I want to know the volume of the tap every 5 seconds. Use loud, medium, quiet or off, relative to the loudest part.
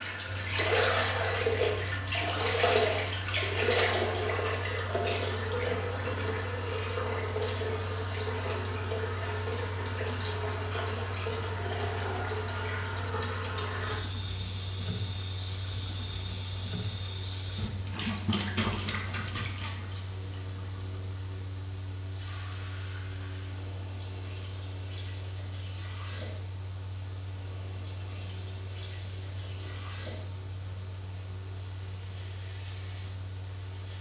loud, medium, medium, medium, quiet, quiet, quiet.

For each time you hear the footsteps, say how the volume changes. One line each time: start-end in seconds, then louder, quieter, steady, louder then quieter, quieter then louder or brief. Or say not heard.
not heard.